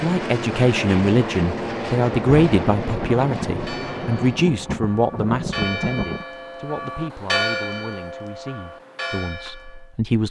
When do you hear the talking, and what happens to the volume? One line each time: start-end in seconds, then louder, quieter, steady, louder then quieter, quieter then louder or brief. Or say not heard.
0.0-10.2 quieter.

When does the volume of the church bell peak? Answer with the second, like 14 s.
7 s.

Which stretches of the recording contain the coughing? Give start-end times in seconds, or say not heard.
not heard.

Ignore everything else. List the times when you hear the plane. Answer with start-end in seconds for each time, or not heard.
0.0-4.8.